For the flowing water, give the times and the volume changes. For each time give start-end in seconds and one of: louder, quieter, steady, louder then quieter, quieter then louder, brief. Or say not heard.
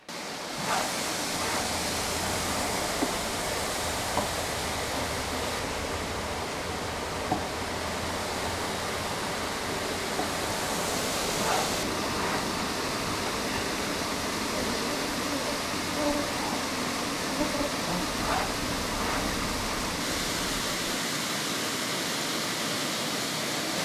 0.0-23.8 steady.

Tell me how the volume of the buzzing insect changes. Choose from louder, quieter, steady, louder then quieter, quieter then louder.
steady.